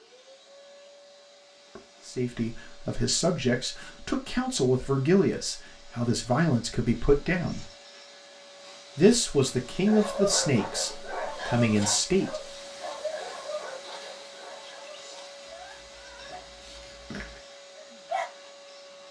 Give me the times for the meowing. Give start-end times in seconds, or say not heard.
not heard.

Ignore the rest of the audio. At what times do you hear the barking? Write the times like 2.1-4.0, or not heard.
9.8-18.3.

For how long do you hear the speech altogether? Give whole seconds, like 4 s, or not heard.
9 s.